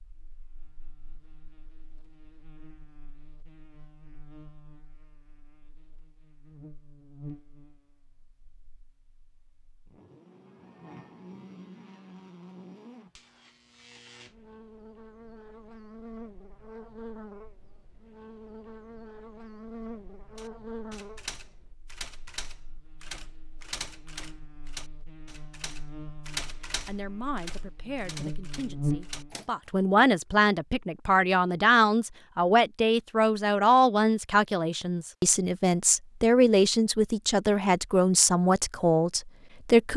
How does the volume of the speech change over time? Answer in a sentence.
The loudness of the speech goes up.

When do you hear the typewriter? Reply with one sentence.
The typewriter can be heard from 20.4 to 29.7 s.